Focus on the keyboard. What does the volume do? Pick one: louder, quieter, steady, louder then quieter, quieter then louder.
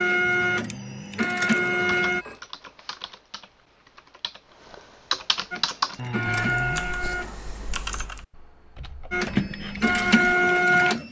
louder then quieter.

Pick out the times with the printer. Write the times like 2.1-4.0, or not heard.
0.0-2.2, 5.5-7.3, 9.1-11.0.